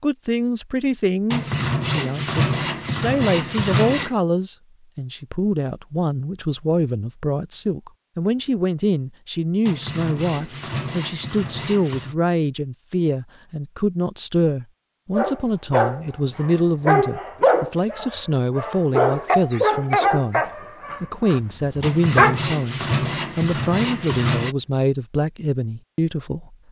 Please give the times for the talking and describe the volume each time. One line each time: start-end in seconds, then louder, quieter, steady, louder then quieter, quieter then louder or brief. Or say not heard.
0.0-26.6 steady.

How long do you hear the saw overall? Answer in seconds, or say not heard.
8 s.